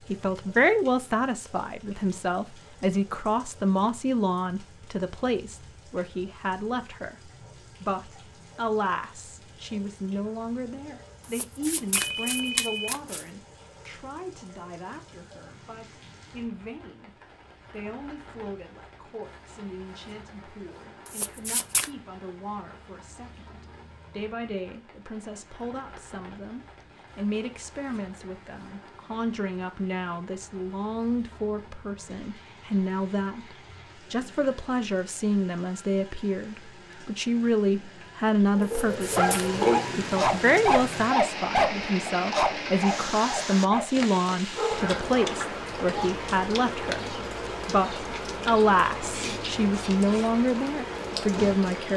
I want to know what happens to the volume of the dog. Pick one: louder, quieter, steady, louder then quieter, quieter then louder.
quieter.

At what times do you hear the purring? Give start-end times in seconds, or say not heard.
not heard.